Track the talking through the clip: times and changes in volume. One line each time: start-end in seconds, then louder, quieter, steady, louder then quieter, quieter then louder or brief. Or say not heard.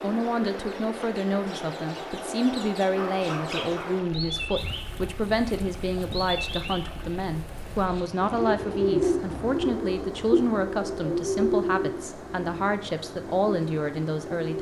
0.0-14.5 steady.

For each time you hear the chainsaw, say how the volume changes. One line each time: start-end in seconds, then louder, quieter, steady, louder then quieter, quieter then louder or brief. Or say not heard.
not heard.